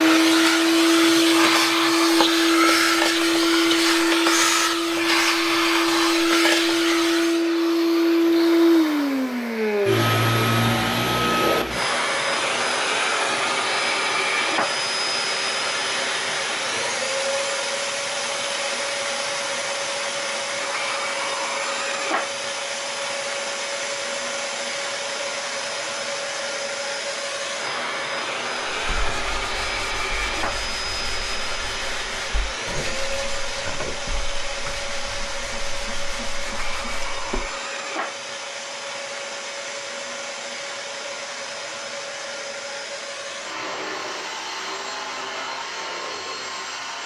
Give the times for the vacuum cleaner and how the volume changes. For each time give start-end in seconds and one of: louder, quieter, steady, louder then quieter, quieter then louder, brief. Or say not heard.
0.0-47.0 quieter.